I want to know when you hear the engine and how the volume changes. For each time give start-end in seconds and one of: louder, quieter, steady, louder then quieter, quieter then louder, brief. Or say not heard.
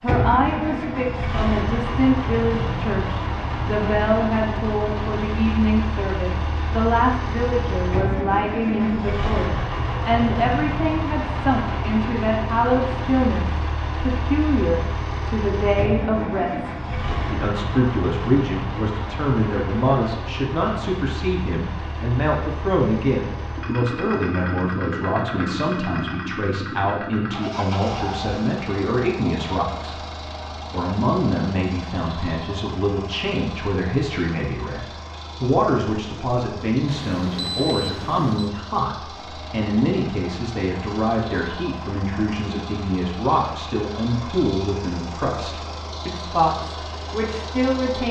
0.0-48.0 quieter.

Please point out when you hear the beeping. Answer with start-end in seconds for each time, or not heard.
36.9-38.5.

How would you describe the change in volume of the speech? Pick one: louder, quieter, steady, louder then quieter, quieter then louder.
steady.